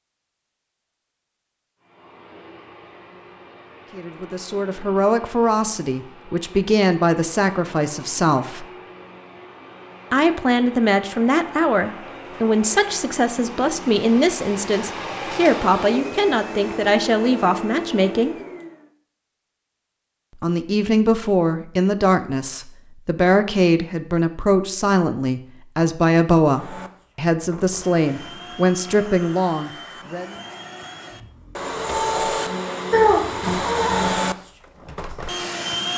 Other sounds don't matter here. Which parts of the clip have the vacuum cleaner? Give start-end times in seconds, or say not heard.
1.8-18.9, 26.4-35.9.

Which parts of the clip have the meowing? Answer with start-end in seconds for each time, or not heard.
32.9-34.1.